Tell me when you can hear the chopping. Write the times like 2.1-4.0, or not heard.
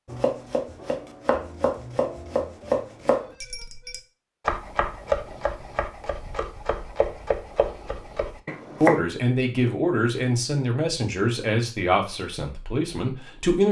0.1-9.0.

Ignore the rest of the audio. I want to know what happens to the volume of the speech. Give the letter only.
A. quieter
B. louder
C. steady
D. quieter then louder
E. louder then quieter
A.